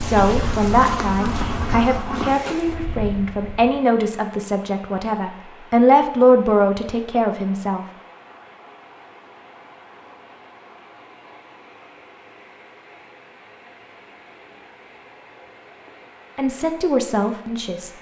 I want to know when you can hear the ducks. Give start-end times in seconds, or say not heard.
0.3-2.4.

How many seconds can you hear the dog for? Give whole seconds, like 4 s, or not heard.
not heard.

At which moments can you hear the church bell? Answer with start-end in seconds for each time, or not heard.
not heard.